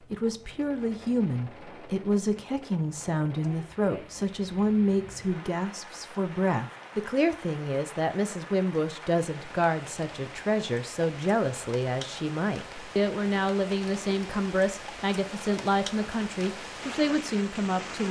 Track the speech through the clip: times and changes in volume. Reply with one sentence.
The speech can be heard from 0.0 to 18.0 s, at a steady volume.